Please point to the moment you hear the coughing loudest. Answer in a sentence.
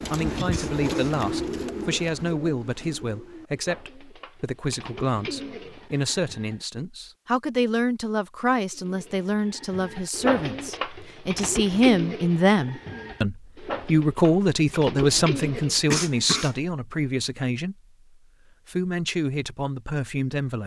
The volume of the coughing peaks at 16 seconds.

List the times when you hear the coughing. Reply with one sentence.
The coughing can be heard from 0.5 to 1.1 s and from 15.9 to 16.6 s.